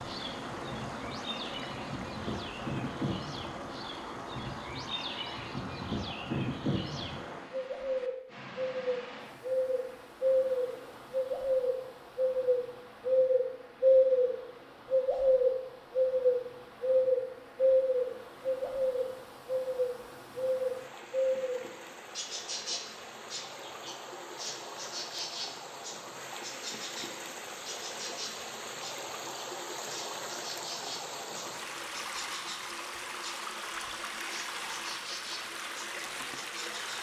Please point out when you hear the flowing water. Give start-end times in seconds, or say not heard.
0.0-36.9.